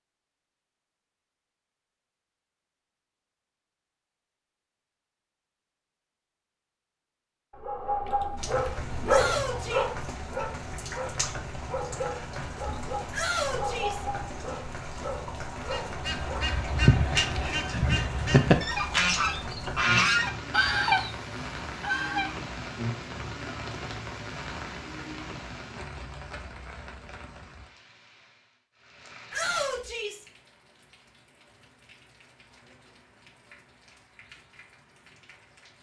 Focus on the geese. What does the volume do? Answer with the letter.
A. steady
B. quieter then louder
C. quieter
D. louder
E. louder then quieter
A.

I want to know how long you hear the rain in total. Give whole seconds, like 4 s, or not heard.
27 s.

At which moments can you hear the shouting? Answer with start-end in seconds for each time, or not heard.
9.1-9.8, 13.1-14.1, 29.3-30.2.